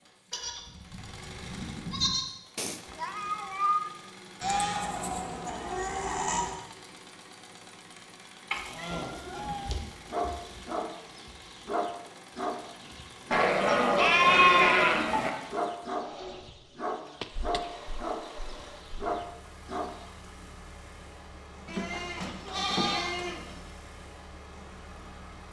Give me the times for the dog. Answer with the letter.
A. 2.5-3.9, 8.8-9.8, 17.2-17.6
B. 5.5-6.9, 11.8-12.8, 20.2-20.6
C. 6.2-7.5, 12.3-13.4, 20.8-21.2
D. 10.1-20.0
D.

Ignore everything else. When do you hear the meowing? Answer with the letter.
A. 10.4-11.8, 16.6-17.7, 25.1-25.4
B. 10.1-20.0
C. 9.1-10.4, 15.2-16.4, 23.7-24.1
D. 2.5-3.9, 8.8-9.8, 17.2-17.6
D.